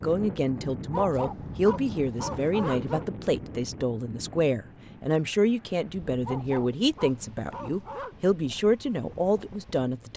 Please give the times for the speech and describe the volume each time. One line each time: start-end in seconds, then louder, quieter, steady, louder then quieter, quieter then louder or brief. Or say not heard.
0.0-10.1 steady.